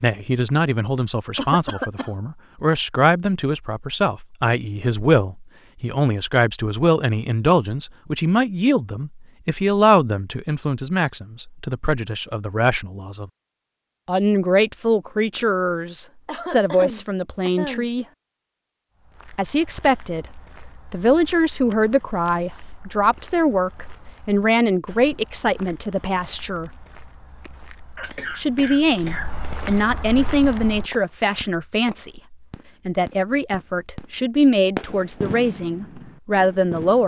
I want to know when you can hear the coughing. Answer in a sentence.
You can hear the coughing from 1.4 to 2.1 s, from 16.2 to 17.9 s and from 27.9 to 29.9 s.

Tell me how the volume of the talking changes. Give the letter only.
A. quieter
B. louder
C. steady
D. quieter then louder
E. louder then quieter
C.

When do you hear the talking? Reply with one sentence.
The talking can be heard from 0.0 to 13.3 s, from 14.1 to 18.1 s, from 19.4 to 26.7 s and from 28.4 to 37.0 s.